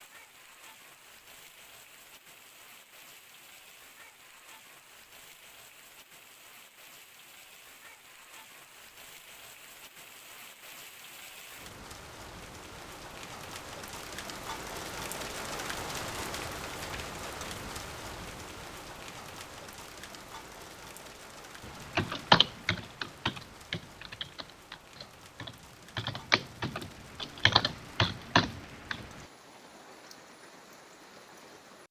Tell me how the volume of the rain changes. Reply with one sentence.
The loudness of the rain goes up, then down.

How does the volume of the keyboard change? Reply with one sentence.
The loudness of the keyboard goes down, then up.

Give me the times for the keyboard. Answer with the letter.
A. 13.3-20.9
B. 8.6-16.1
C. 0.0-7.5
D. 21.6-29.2
D.